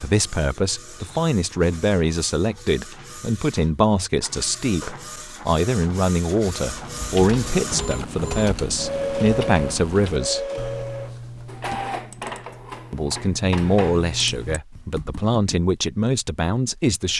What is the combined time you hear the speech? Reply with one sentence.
You can hear the speech for 15 seconds altogether.